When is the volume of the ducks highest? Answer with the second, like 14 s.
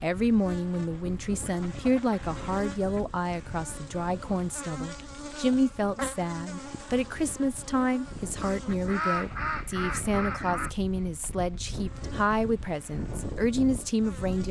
9 s.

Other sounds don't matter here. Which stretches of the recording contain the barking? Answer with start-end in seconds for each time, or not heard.
not heard.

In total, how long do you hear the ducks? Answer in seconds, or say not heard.
4 s.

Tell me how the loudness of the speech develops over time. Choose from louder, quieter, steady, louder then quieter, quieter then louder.
steady.